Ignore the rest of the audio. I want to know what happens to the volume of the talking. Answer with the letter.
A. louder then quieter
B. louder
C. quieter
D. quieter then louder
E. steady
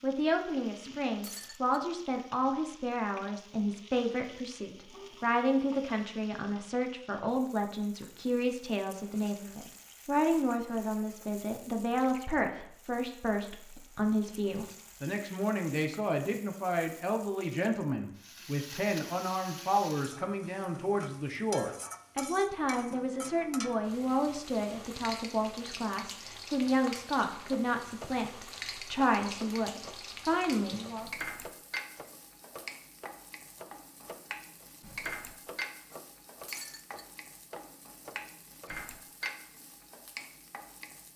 E.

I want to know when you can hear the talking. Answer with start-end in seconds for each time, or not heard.
0.0-31.1.